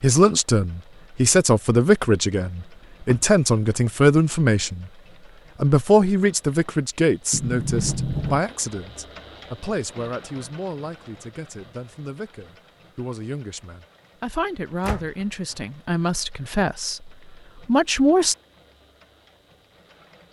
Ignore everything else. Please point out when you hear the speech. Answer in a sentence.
You can hear the speech from 0.0 to 4.9 s and from 5.6 to 18.4 s.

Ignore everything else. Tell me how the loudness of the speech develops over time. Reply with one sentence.
The loudness of the speech goes down, then up.